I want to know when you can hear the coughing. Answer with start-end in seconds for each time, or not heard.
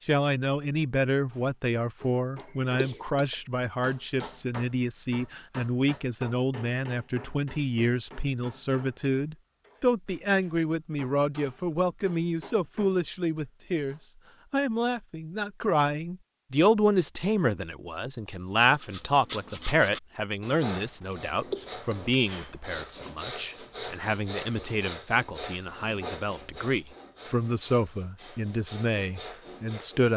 2.8-3.4, 21.5-22.2.